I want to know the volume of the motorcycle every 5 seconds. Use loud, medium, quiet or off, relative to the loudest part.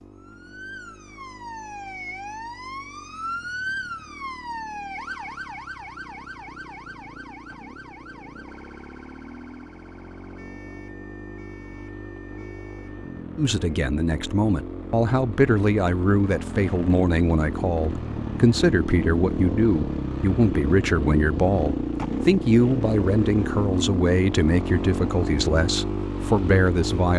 quiet, quiet, medium, loud, loud, loud.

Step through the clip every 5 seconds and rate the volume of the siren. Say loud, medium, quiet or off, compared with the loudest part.
loud, medium, quiet, off, off, off.